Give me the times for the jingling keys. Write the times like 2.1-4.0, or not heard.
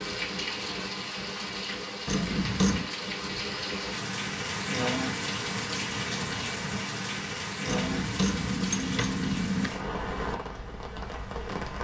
2.0-2.9, 7.7-9.7.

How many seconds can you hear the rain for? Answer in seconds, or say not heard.
12 s.